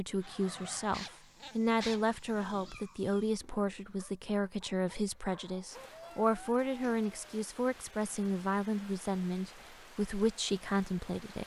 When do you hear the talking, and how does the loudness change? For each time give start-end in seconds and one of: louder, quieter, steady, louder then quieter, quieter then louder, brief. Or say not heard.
0.0-11.4 steady.